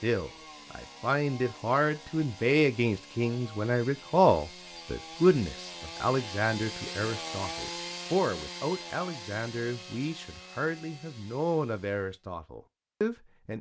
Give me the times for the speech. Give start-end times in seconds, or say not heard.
0.0-13.5.